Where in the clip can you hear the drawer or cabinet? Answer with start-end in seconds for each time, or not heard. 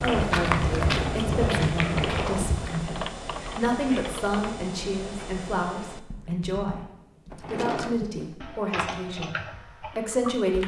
0.8-2.7, 7.3-8.2.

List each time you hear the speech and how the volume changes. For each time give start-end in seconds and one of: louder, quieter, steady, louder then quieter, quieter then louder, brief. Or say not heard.
0.0-10.6 steady.